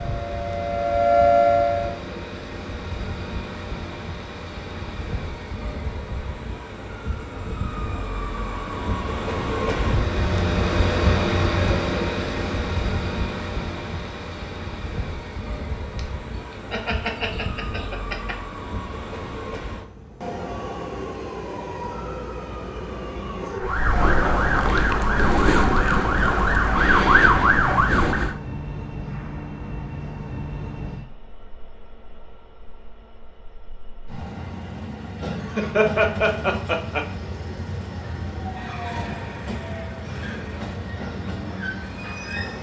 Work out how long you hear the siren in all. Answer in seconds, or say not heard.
7 s.